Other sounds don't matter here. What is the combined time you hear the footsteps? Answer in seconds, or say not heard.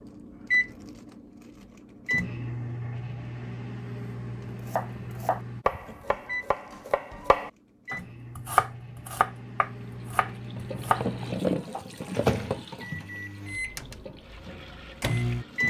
not heard.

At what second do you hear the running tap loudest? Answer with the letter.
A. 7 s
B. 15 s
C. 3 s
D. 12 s
D.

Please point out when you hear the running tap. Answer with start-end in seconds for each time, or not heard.
9.7-15.6.